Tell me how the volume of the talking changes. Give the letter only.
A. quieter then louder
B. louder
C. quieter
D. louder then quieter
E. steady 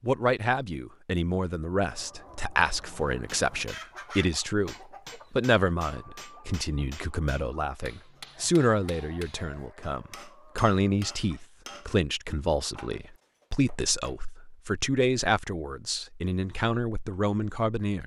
E.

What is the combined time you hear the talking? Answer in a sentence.
You can hear the talking for 18 seconds altogether.